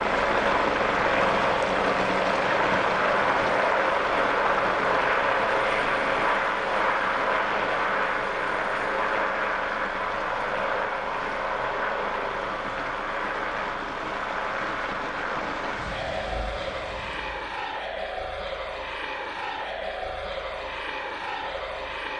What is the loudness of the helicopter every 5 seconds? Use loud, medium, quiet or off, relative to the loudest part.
loud, loud, medium, medium, medium.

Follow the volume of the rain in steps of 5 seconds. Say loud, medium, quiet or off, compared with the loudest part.
loud, medium, medium, medium, off.